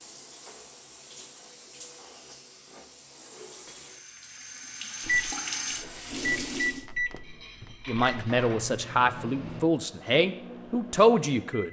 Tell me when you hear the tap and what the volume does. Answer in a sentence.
The tap can be heard from 0.0 to 6.8 s, getting louder.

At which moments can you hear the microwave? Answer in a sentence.
You can hear the microwave from 5.0 to 11.6 s.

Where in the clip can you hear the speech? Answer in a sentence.
The speech can be heard from 7.8 to 11.6 s.